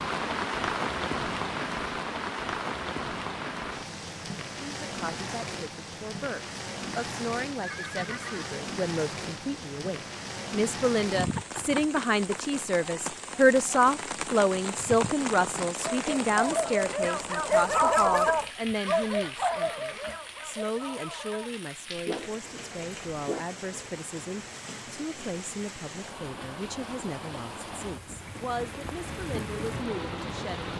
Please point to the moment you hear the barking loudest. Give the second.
18 s.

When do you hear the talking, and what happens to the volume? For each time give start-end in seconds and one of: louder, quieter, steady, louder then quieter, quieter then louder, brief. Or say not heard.
4.6-30.6 louder then quieter.